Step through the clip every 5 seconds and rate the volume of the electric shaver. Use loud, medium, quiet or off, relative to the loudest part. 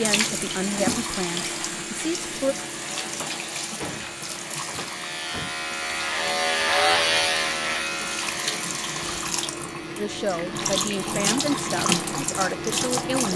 quiet, loud, quiet.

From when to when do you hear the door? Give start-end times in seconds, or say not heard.
3.0-5.5.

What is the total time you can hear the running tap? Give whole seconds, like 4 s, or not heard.
13 s.